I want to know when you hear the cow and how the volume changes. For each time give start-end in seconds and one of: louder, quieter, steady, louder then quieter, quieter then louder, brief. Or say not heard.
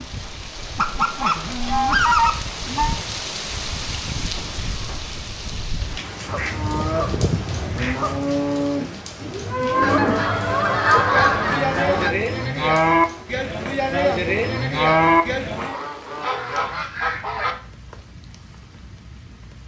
6.5-15.8 louder.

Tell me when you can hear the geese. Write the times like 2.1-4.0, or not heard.
0.7-3.0, 6.2-8.2, 9.8-12.2, 15.6-17.6.